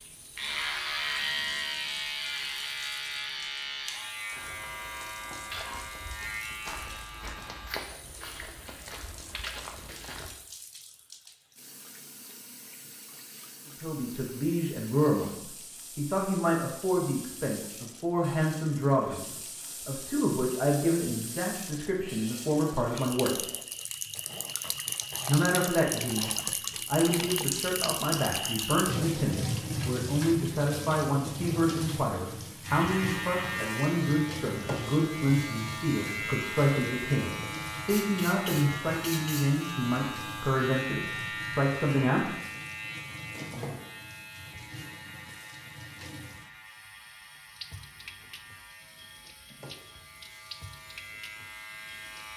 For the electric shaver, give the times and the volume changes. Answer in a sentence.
You can hear the electric shaver from 0.3 to 7.8 s, getting quieter; and from 32.6 to 52.3 s, getting quieter.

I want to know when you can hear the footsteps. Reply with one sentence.
The footsteps can be heard from 4.3 to 10.3 s.